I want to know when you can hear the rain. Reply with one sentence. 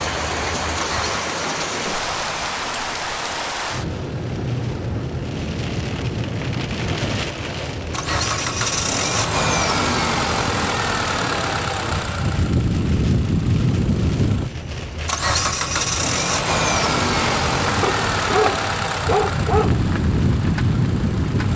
You can hear the rain from 0.0 to 21.5 s.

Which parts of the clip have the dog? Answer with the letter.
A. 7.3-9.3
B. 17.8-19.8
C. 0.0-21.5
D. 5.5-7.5
B.